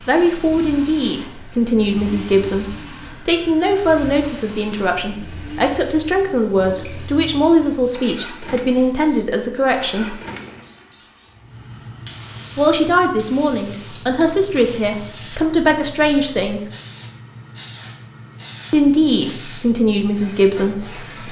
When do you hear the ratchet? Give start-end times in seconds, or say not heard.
not heard.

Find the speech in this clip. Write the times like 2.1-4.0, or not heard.
0.1-10.2, 12.6-16.6, 18.7-21.2.